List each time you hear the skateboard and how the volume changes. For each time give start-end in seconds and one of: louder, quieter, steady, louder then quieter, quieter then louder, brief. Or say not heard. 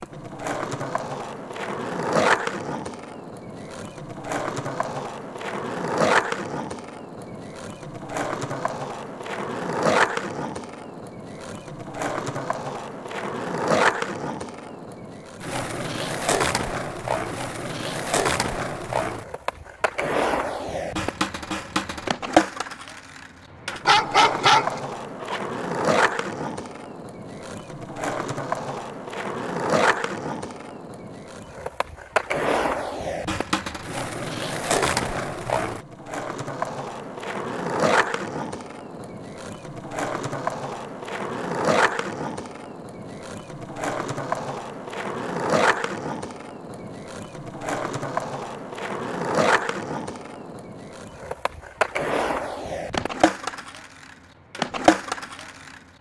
0.0-55.8 steady.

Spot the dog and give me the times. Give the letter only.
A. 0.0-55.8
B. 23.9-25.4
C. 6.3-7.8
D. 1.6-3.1
B.